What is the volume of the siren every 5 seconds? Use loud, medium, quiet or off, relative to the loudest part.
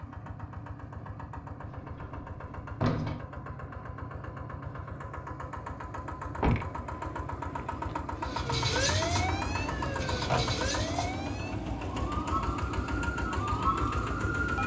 off, loud, loud.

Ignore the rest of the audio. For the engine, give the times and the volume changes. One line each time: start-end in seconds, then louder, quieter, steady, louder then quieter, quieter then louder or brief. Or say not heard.
0.0-14.6 louder.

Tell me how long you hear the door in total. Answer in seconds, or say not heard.
4 s.